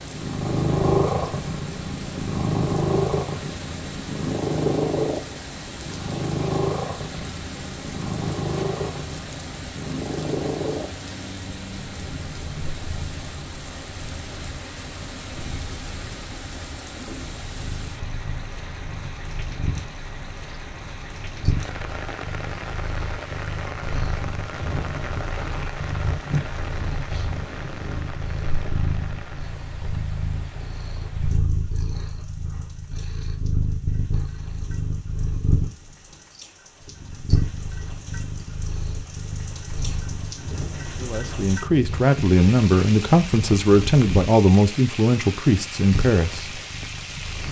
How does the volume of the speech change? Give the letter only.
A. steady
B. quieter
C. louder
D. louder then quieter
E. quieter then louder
A.